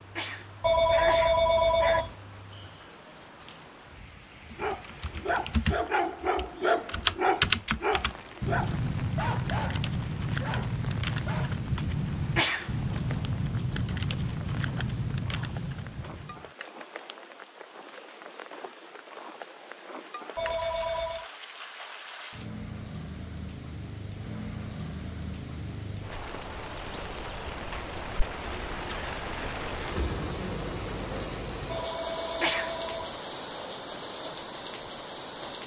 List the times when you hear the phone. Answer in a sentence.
The phone can be heard from 0.6 to 2.1 s, from 20.4 to 21.3 s and from 31.6 to 33.1 s.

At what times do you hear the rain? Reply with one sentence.
The rain can be heard from 0.0 to 35.6 s.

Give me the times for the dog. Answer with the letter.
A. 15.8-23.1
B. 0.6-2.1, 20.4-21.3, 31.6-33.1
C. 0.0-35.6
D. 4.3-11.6
D.